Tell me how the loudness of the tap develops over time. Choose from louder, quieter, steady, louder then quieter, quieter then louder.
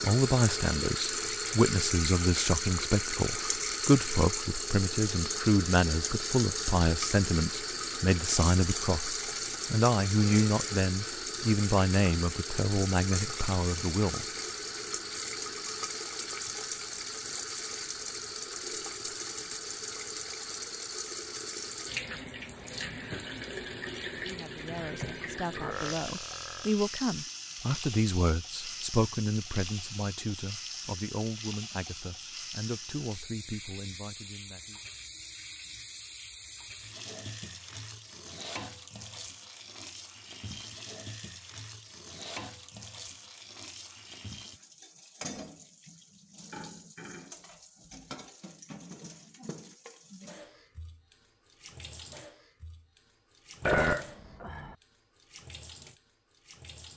quieter.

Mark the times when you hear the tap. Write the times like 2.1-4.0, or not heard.
0.0-56.9.